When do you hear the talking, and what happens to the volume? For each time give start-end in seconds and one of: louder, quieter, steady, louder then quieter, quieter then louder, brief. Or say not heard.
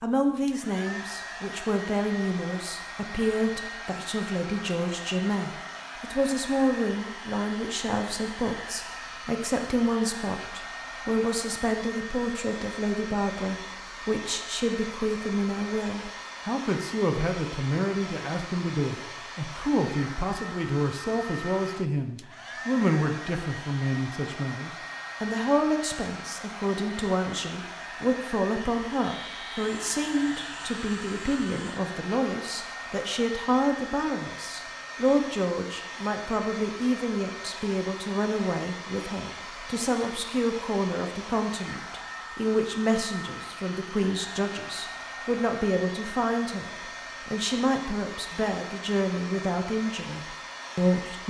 0.0-51.2 steady.